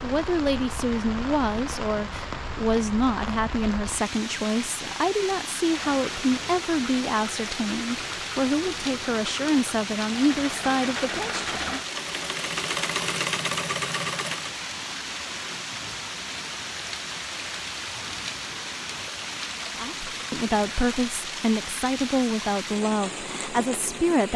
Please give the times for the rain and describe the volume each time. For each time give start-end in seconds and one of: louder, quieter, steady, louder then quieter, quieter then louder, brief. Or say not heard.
0.0-24.3 steady.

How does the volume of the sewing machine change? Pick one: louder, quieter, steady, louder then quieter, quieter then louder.
louder.